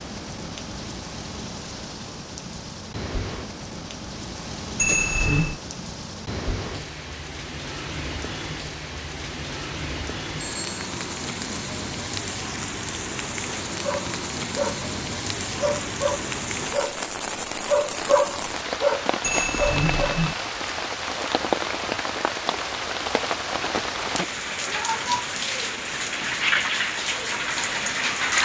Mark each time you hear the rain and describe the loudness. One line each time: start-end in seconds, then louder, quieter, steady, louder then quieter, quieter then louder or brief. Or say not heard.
0.0-28.3 louder.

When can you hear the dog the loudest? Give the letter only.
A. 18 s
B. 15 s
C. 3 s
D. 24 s
A.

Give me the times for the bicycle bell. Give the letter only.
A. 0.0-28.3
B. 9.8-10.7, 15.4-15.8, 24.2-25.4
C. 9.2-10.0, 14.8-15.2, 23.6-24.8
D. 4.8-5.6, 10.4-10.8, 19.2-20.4
D.